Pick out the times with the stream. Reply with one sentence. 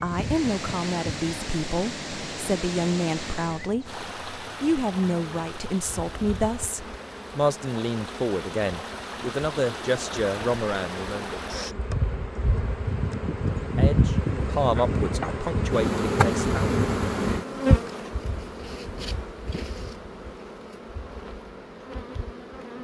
You can hear the stream from 0.0 to 11.8 s.